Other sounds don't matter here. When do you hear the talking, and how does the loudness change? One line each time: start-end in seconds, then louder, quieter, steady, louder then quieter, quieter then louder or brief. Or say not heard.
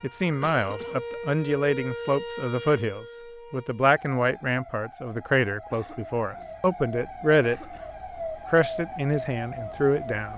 0.0-7.6 steady
8.3-10.3 brief.